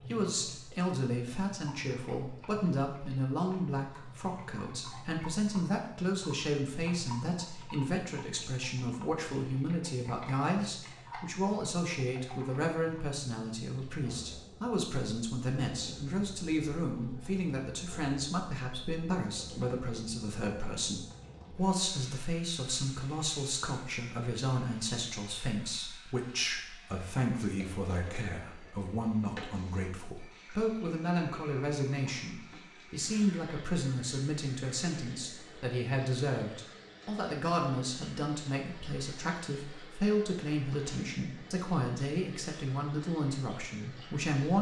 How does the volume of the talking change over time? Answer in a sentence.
The loudness of the talking stays about the same.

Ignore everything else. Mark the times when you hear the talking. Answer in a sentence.
The talking can be heard from 0.1 to 44.5 s.